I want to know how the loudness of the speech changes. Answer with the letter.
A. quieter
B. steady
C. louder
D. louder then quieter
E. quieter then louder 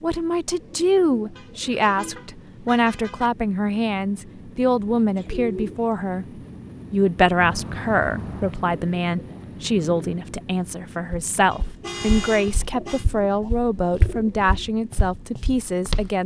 B.